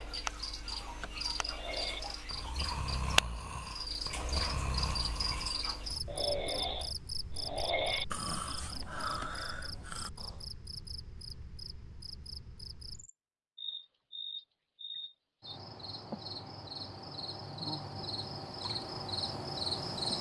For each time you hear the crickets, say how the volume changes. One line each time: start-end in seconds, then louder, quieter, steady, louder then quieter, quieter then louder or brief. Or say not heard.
0.0-20.1 quieter then louder.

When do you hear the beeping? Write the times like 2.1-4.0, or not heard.
not heard.